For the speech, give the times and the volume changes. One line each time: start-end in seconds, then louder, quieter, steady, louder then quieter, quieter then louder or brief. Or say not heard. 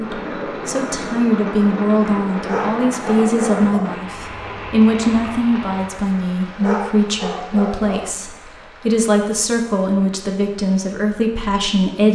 0.0-12.1 steady.